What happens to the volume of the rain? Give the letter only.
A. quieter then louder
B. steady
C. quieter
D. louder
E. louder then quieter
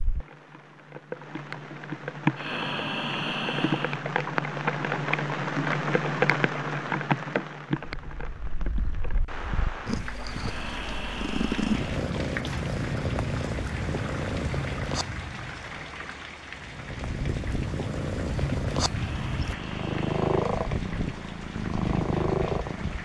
C.